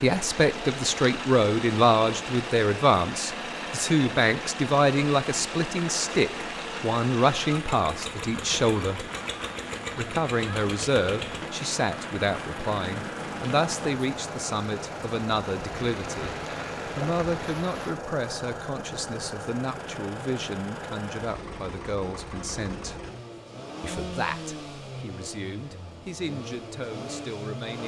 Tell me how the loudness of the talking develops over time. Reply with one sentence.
The volume of the talking goes down.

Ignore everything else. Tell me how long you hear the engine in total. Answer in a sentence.
The engine can be heard for 28 seconds in total.